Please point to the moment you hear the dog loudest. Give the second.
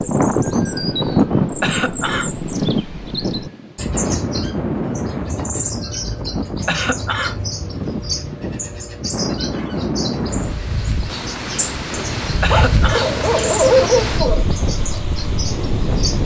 14 s.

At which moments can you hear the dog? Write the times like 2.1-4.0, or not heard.
12.5-14.4.